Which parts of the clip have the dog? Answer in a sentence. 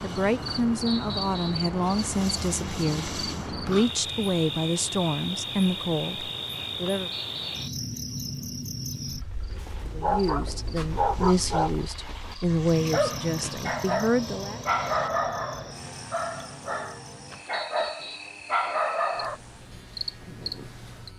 You can hear the dog from 9.6 to 19.4 s.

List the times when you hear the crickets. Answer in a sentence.
You can hear the crickets from 0.0 to 21.1 s.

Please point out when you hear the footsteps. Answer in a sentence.
The footsteps can't be heard in this clip.